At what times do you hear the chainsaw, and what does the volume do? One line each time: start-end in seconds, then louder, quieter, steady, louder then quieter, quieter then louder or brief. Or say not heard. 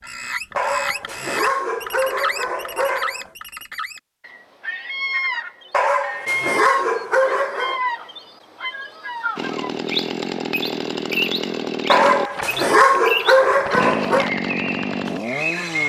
9.3-15.8 steady.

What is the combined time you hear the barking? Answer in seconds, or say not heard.
7 s.